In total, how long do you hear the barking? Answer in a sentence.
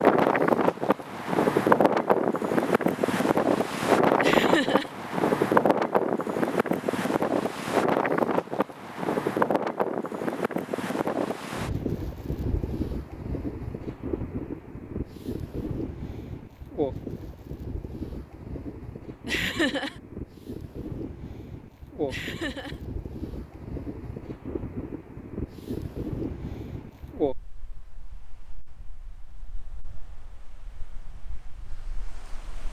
The barking can't be heard in this clip.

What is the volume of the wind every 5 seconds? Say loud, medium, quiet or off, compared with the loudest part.
loud, loud, medium, quiet, quiet, quiet, quiet.